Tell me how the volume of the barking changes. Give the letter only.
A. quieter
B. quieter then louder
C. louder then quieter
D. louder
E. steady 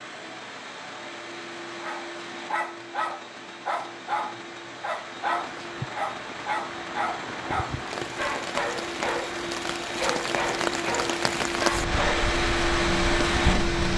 E.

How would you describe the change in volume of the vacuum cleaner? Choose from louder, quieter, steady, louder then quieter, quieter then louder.
louder.